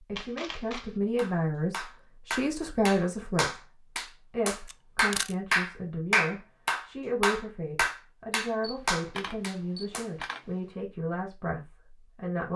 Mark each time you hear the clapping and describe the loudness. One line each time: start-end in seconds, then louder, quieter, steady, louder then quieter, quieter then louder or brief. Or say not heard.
1.1-10.1 louder then quieter.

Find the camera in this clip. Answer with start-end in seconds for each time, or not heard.
0.1-0.9, 4.7-5.3, 8.6-10.4.